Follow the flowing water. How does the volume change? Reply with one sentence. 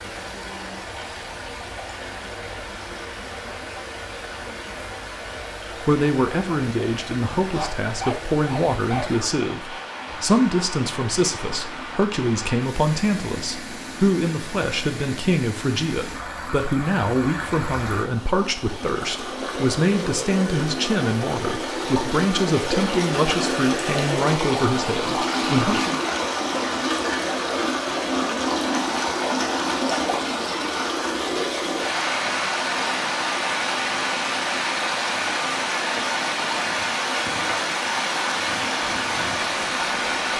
The loudness of the flowing water goes up.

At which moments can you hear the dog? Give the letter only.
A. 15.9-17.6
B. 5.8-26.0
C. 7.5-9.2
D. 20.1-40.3
C.